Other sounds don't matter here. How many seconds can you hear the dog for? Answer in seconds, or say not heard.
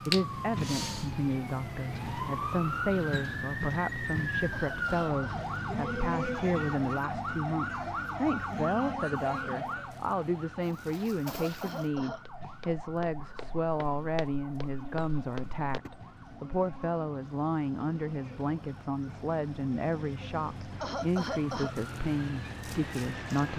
not heard.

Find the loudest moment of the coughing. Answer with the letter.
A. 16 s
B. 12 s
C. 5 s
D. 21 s
D.